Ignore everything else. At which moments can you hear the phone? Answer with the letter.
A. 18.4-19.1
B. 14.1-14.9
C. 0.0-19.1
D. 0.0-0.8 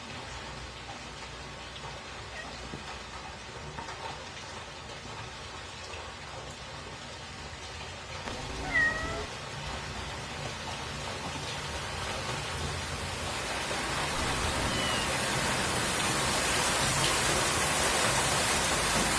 B.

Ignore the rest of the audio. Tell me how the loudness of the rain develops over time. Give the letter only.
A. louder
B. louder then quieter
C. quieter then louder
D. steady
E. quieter
A.